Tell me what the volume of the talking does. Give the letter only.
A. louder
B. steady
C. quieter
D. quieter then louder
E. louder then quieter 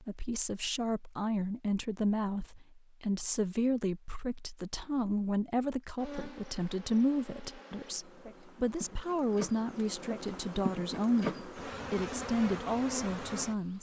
B.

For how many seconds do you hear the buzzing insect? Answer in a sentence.
You can hear the buzzing insect for 8 seconds altogether.